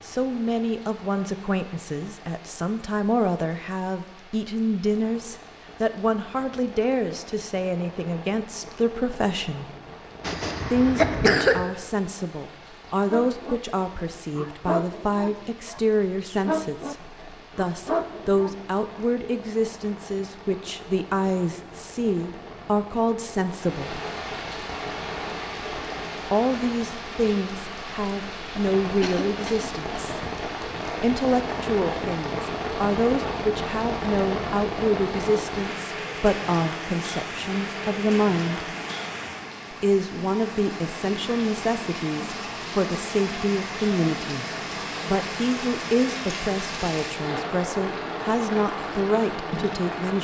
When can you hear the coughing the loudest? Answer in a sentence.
The loudest moment of the coughing is at 11 seconds.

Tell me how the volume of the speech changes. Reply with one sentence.
The loudness of the speech stays about the same.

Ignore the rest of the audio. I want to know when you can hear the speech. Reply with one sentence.
You can hear the speech from 0.1 to 9.7 s, from 10.7 to 23.9 s, from 26.3 to 30.1 s, from 31.0 to 38.7 s, from 39.7 to 44.5 s and from 45.0 to 50.1 s.